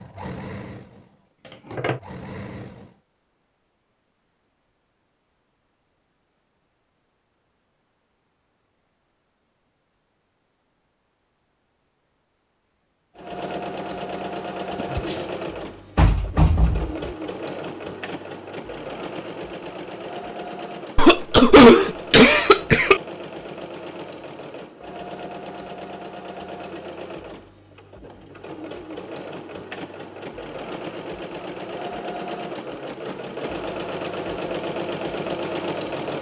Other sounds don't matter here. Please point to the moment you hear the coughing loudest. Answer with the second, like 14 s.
22 s.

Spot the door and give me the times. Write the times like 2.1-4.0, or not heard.
15.9-17.1.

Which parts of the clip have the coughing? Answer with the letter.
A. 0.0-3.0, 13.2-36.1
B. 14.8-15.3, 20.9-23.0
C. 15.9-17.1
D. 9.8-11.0
B.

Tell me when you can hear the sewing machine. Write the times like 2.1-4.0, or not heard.
0.0-3.0, 13.2-36.1.